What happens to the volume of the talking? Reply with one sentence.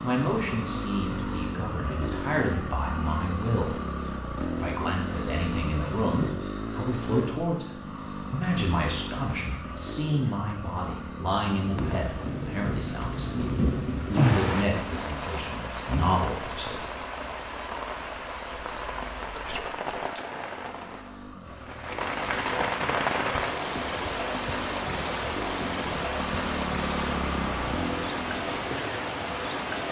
The volume of the talking stays about the same.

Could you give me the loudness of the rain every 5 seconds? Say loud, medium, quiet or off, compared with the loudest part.
off, off, loud, medium, loud, loud.